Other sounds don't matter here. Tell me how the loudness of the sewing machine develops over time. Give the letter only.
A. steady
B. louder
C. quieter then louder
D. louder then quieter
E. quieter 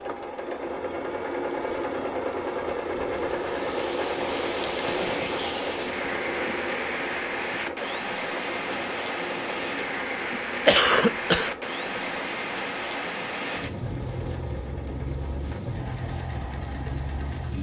E.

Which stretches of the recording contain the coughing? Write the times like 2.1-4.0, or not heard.
10.7-11.6.